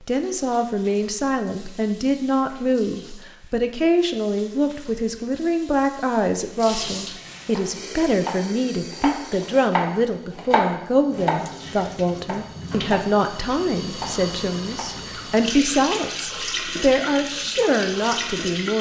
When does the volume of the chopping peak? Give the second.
11 s.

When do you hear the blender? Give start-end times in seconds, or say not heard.
not heard.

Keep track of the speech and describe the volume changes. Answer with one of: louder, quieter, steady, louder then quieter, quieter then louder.
steady.